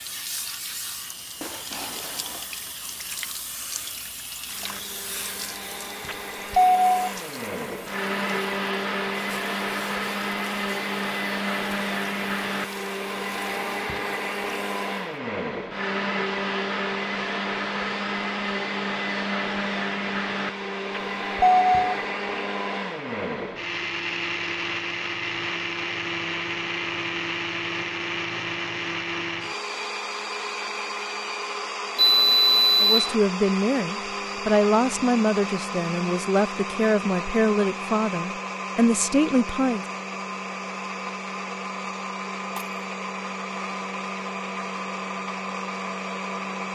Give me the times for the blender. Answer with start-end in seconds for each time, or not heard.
4.5-46.6.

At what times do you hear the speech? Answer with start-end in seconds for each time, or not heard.
32.8-39.9.